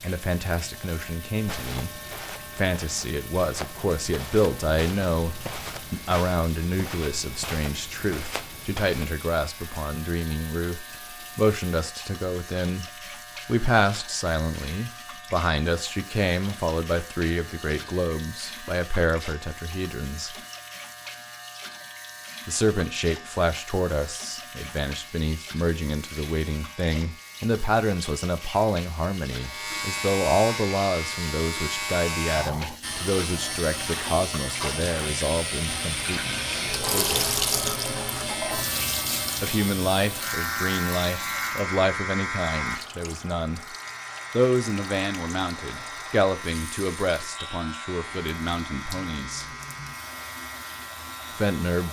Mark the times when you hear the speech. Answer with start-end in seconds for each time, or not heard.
0.0-12.8, 13.4-20.4, 22.4-37.4, 39.4-43.6, 44.3-49.5, 51.4-51.8.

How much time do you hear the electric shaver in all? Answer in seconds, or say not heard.
52 s.